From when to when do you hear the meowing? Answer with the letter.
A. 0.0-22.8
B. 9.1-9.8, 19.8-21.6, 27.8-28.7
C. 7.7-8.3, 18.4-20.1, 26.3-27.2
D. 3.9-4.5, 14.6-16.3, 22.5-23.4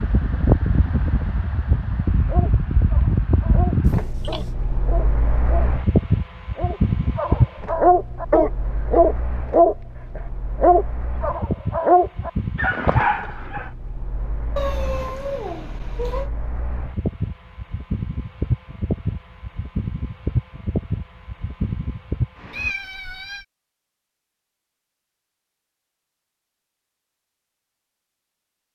D.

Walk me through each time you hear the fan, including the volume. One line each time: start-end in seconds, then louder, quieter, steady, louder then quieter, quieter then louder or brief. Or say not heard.
0.0-22.8 quieter then louder.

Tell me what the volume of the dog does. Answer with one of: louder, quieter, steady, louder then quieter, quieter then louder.
louder then quieter.